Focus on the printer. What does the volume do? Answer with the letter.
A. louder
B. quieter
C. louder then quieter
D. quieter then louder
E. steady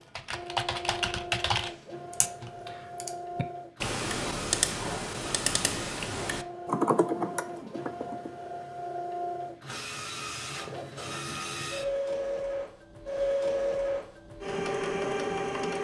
A.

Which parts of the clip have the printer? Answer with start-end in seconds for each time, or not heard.
0.0-15.7.